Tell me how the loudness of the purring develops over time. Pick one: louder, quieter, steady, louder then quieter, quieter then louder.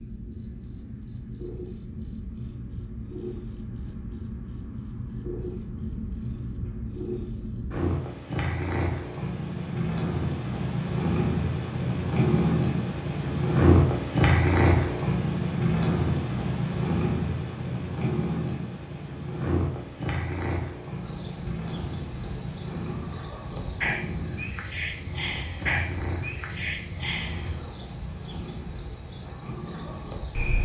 louder then quieter.